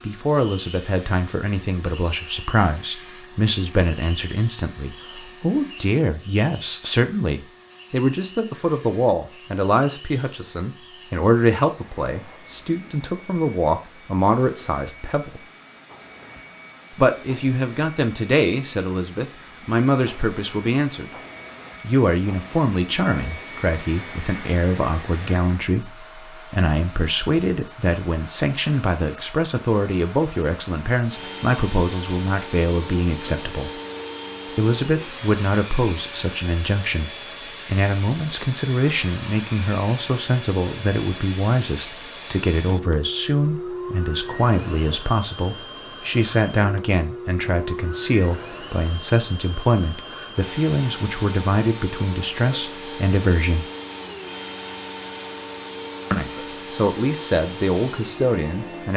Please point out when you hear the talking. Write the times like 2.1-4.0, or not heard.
0.1-15.4, 16.9-21.1, 21.8-33.7, 34.5-53.6, 56.1-58.9.